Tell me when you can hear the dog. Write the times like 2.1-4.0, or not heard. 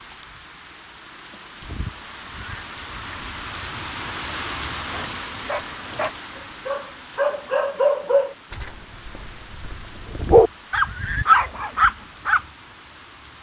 4.9-12.4.